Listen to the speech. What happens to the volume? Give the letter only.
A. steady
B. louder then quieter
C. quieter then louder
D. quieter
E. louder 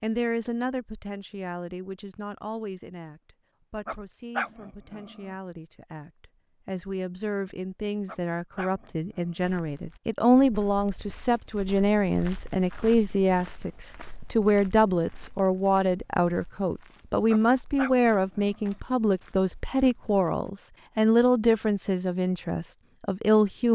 E.